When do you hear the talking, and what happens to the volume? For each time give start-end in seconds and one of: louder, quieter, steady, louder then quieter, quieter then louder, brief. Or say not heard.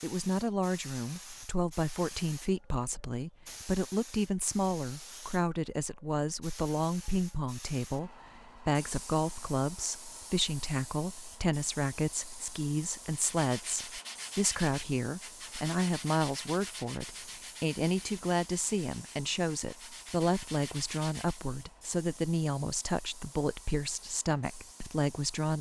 0.0-25.5 steady.